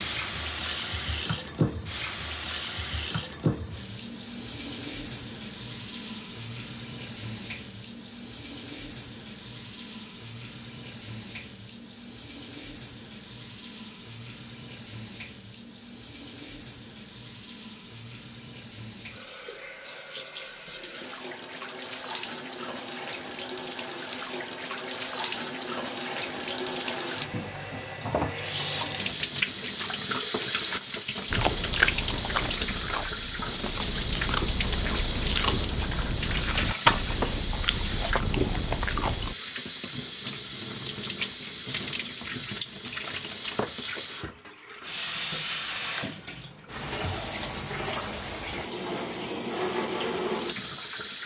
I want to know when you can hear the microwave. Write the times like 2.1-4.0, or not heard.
not heard.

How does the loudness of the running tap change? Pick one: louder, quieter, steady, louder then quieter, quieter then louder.
quieter then louder.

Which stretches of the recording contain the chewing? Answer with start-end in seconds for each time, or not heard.
31.3-39.4.